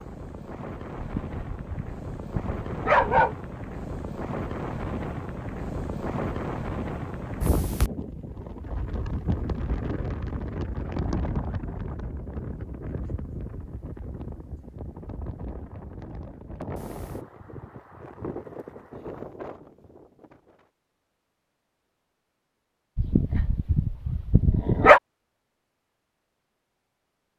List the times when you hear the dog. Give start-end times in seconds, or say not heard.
0.9-3.4, 22.9-25.0.